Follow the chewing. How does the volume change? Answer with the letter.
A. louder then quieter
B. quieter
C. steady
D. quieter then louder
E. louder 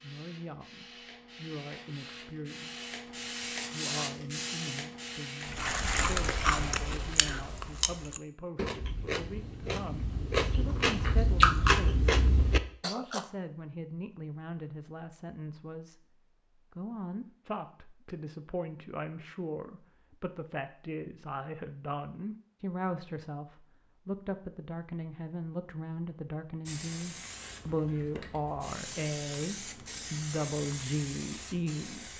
D.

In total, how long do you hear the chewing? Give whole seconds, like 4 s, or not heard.
8 s.